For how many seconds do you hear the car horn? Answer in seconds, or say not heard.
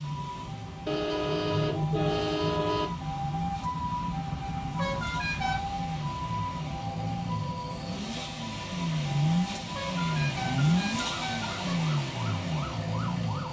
5 s.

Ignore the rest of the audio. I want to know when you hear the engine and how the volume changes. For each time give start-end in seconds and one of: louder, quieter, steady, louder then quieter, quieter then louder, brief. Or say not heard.
0.0-13.4 louder.